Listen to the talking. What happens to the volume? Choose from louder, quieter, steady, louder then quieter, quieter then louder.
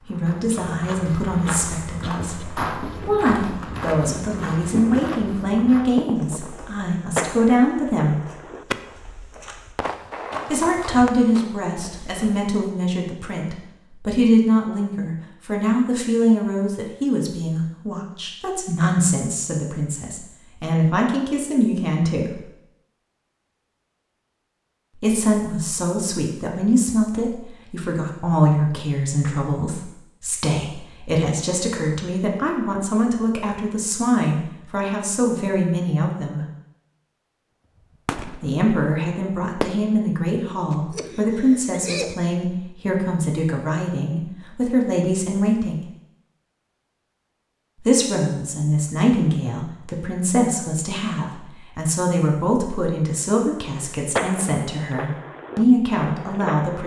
steady.